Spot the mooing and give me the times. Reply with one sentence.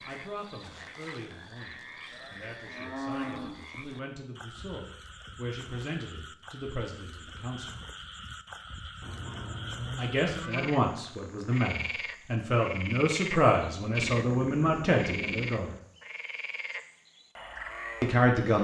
You can hear the mooing from 2.1 to 3.6 s, from 9.0 to 10.8 s and from 13.9 to 15.5 s.